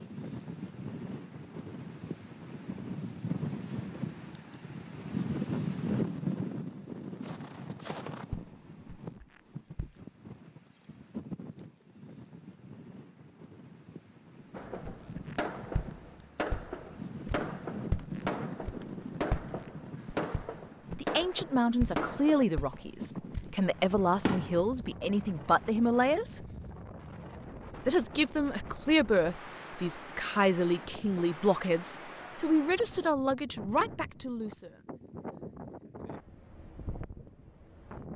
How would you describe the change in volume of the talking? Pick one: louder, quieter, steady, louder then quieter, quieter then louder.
steady.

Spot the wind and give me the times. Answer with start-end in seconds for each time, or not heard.
0.0-38.1.